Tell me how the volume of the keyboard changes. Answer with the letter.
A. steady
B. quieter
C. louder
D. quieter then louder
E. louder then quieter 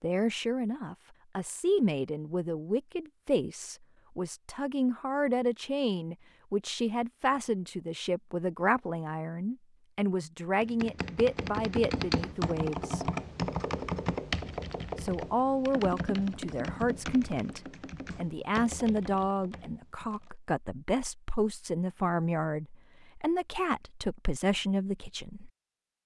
B.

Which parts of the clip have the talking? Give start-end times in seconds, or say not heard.
0.0-13.1, 14.9-25.5.